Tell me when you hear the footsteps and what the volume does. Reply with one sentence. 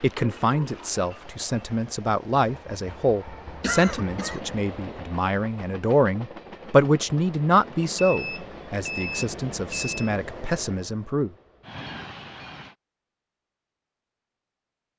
The footsteps can't be heard in this clip.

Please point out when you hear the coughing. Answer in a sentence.
You can hear the coughing from 3.6 to 4.4 s.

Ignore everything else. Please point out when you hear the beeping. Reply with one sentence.
You can hear the beeping from 7.7 to 10.1 s.